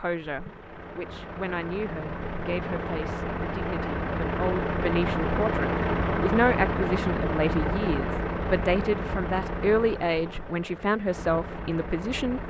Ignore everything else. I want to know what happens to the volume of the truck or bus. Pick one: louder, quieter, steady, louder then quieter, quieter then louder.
louder then quieter.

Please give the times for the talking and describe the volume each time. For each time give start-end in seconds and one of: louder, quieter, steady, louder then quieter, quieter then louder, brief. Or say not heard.
0.0-12.4 louder.